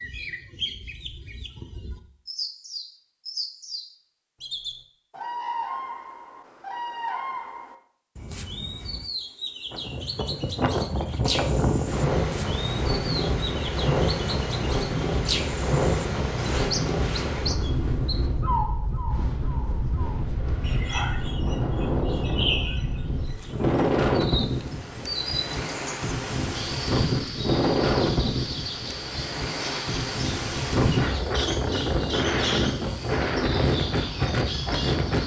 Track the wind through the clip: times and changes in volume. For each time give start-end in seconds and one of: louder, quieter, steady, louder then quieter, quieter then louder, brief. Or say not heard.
9.7-35.2 steady.